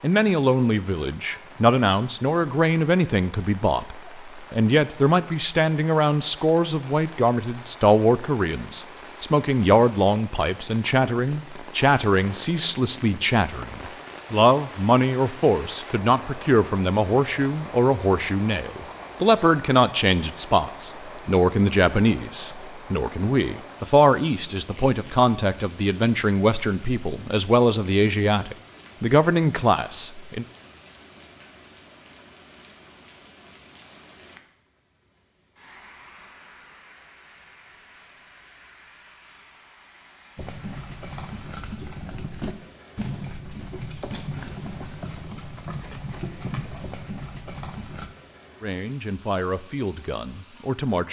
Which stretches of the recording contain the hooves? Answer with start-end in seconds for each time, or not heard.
40.4-48.1.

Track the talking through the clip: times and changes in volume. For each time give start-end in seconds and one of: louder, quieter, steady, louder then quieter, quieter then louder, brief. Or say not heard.
0.0-30.4 steady
48.6-51.0 brief.